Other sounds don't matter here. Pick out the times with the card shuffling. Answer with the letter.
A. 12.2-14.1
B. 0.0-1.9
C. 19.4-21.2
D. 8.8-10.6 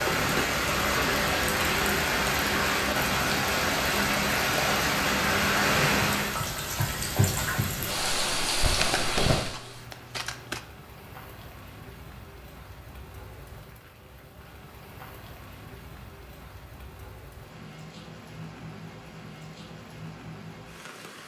D.